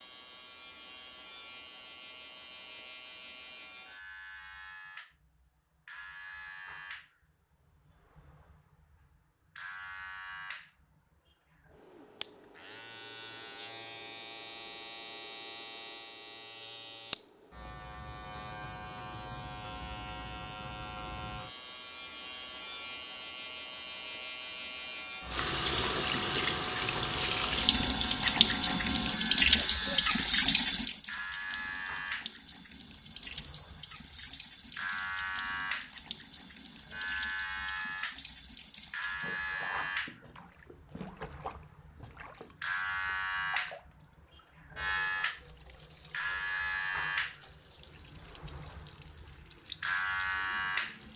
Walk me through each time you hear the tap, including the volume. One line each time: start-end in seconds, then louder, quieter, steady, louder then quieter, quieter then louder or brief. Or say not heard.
25.3-51.1 quieter.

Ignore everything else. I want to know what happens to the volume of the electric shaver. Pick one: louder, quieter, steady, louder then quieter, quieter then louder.
louder.